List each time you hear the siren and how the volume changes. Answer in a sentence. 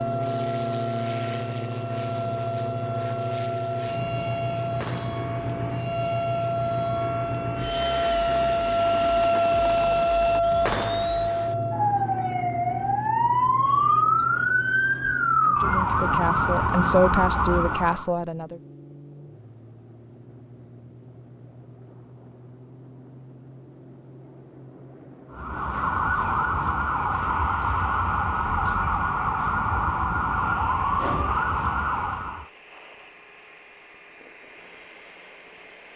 The siren can be heard from 0.0 to 18.1 s, getting louder; and from 25.3 to 32.5 s, at a steady volume.